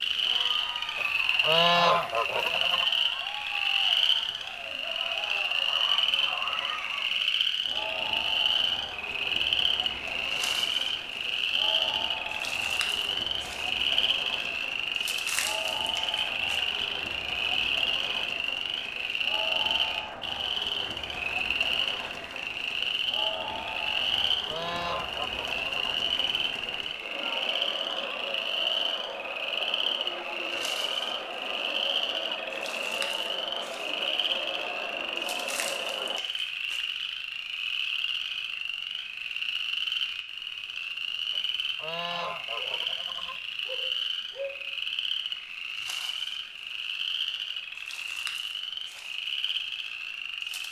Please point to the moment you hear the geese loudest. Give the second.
2 s.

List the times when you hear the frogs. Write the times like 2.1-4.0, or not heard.
0.0-50.6.